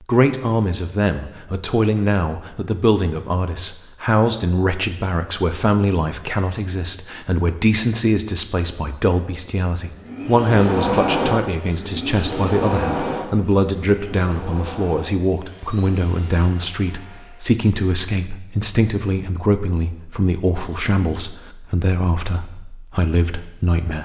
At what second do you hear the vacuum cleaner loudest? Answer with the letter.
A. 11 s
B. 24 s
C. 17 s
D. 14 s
A.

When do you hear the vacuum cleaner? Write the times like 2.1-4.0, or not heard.
9.9-17.6.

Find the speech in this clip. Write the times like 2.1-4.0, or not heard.
0.1-23.9.